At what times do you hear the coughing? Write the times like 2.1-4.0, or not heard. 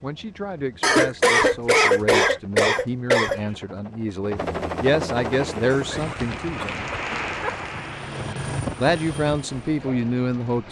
0.8-3.5, 5.7-7.5.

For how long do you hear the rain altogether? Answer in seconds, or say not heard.
5 s.